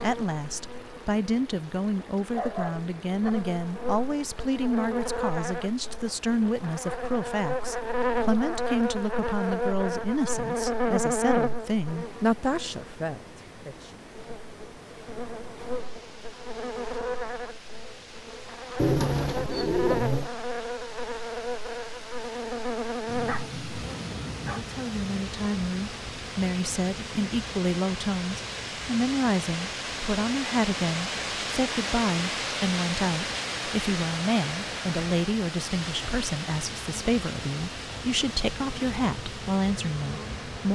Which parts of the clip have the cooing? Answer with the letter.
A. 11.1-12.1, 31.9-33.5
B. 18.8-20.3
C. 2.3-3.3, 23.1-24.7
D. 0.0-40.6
B.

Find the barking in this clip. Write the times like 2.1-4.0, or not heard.
2.3-3.3, 23.1-24.7.